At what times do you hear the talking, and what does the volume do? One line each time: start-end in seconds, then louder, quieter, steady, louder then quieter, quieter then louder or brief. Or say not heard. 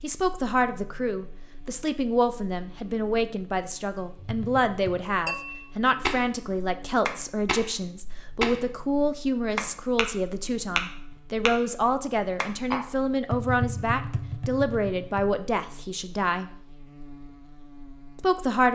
0.0-16.6 steady
18.1-18.6 brief.